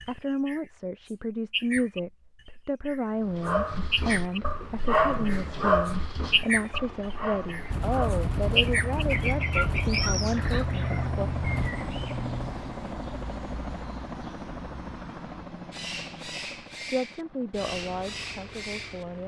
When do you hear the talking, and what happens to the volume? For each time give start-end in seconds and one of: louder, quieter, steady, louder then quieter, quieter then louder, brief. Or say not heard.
0.1-11.3 steady
16.9-19.2 brief.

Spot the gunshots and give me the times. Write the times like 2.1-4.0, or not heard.
7.7-11.7.